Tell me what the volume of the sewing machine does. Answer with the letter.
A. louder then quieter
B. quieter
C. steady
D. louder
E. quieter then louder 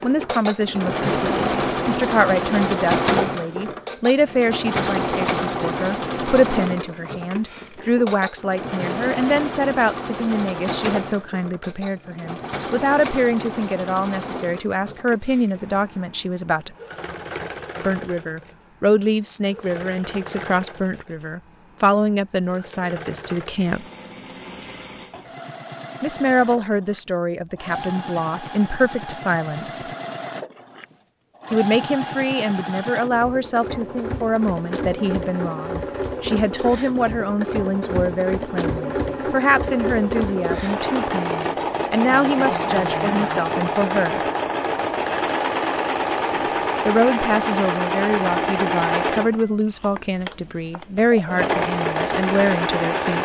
E.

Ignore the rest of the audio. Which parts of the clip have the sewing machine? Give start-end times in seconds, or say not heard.
0.0-53.2.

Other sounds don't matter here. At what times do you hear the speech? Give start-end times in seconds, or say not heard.
0.0-16.7, 17.8-23.9, 26.0-29.9, 31.5-44.2, 46.4-53.2.